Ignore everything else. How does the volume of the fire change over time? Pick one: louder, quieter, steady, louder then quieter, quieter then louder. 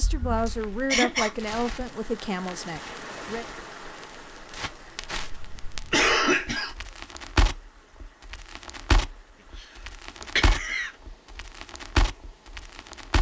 louder.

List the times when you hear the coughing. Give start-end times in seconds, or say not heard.
0.5-1.3, 5.2-6.8, 9.6-10.9.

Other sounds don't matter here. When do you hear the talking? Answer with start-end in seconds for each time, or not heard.
0.0-3.5.